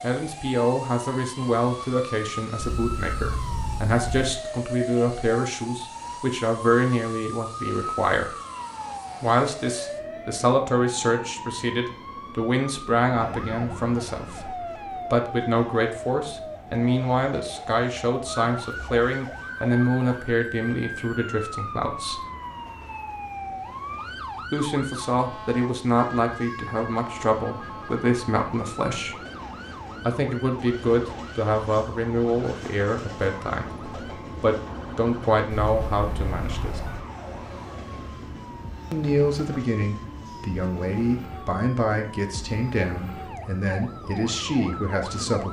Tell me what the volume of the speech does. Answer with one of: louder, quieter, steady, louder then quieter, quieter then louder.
steady.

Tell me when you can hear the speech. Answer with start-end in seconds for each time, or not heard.
0.0-8.3, 9.2-22.2, 24.5-29.1, 30.0-36.8, 38.9-45.4.